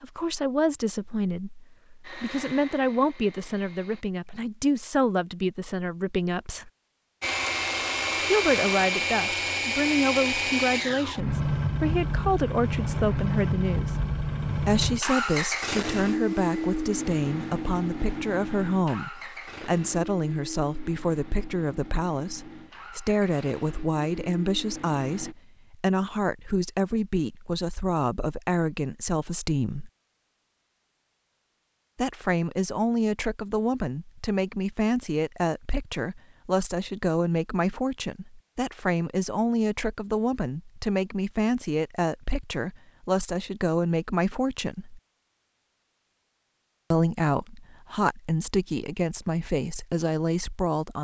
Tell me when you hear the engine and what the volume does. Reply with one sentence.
You can hear the engine briefly from 2.0 to 4.0 s; and from 7.2 to 25.4 s, getting quieter.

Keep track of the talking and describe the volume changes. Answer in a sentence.
The volume of the talking stays about the same.